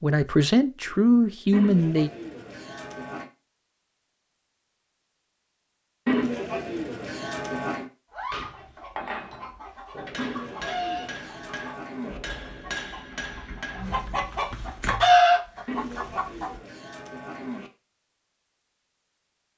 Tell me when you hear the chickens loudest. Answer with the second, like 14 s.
15 s.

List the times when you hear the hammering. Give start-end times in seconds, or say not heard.
8.3-14.3.